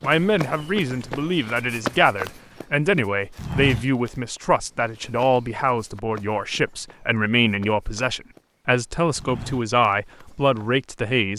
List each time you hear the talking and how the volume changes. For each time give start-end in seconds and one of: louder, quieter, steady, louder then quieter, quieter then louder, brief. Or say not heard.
0.0-11.3 steady.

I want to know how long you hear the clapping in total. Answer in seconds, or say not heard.
not heard.